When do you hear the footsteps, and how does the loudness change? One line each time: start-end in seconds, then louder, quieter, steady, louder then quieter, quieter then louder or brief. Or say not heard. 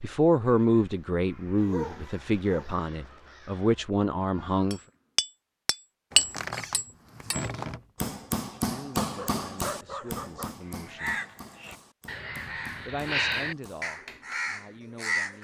not heard.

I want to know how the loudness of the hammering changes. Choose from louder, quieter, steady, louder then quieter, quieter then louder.
quieter.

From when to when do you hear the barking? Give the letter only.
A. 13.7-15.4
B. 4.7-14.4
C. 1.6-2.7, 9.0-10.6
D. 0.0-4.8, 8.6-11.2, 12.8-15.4
C.